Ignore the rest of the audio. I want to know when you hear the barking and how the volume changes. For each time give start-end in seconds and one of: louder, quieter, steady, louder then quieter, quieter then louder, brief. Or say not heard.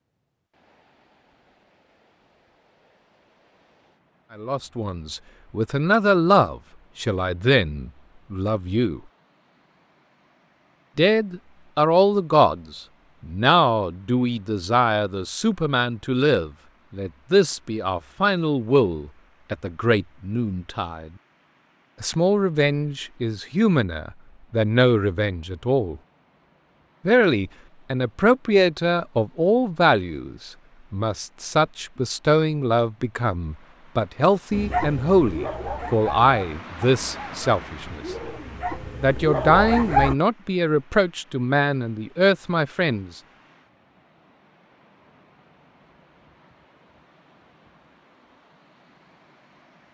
34.5-40.1 quieter then louder.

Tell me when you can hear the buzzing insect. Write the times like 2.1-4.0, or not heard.
not heard.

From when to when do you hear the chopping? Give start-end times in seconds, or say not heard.
not heard.